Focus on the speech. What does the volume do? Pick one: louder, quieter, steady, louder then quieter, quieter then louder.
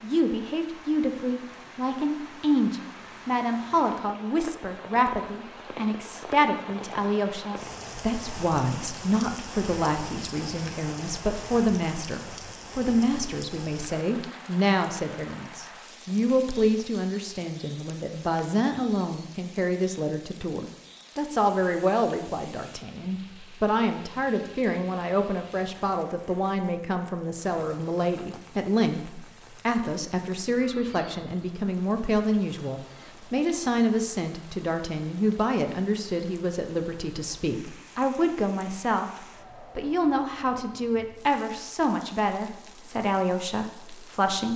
steady.